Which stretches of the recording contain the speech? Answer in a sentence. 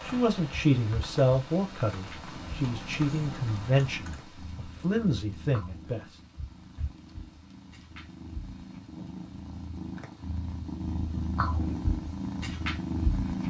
You can hear the speech from 0.0 to 6.0 s.